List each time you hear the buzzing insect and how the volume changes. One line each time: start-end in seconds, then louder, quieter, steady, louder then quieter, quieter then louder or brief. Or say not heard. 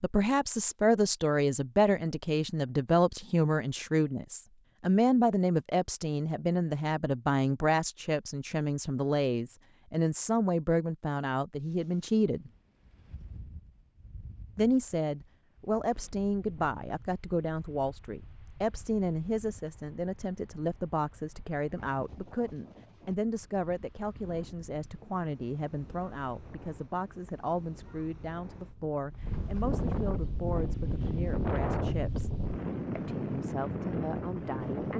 not heard.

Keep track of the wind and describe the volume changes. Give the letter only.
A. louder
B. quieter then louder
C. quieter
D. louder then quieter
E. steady
A.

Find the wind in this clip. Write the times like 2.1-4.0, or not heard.
11.7-34.9.